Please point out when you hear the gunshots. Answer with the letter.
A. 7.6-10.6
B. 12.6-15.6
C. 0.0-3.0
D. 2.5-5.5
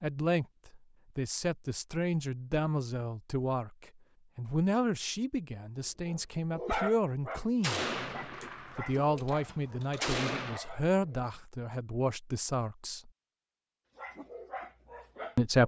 A.